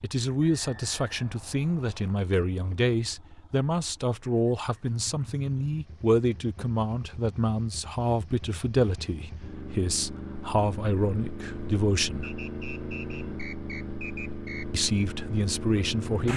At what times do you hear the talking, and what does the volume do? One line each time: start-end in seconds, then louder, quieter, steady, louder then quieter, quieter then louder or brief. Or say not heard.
0.0-12.3 steady
14.7-16.3 brief.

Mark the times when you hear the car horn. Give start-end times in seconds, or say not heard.
not heard.